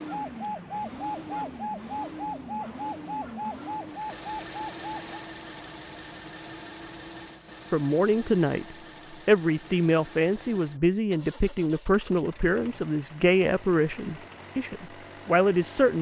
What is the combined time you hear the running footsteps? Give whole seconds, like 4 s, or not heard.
not heard.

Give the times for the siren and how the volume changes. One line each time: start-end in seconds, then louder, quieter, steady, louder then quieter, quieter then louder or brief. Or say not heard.
0.0-5.2 steady.